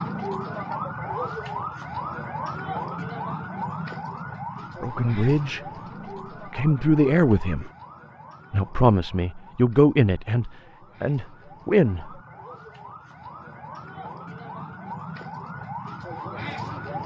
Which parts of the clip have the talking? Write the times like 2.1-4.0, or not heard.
4.8-5.6, 6.5-7.7, 8.5-12.2.